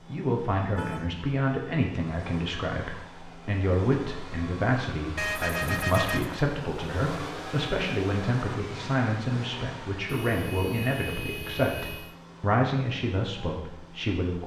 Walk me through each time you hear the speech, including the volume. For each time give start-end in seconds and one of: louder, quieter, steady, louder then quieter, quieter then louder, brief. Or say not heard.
0.1-14.4 steady.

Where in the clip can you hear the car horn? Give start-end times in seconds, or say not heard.
0.8-1.3, 5.2-6.5, 10.1-12.2.